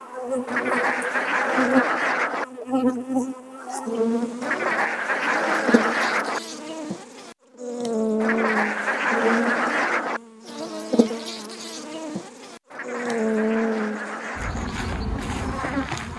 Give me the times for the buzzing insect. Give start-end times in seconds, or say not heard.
0.0-16.1.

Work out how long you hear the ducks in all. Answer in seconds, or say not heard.
8 s.